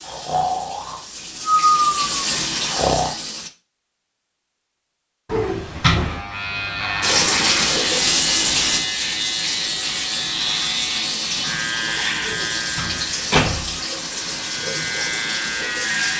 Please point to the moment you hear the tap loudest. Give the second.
8 s.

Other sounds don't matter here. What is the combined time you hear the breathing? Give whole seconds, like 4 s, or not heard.
3 s.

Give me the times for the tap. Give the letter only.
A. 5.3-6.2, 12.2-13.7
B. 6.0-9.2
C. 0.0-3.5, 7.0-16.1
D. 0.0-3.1
C.